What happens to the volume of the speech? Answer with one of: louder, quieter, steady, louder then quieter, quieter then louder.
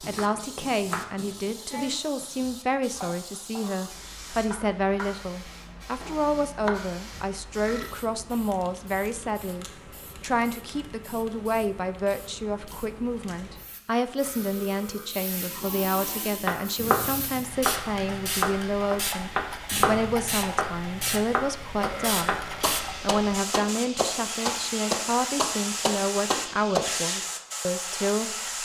steady.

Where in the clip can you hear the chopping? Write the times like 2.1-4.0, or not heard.
0.0-6.8, 16.4-27.1.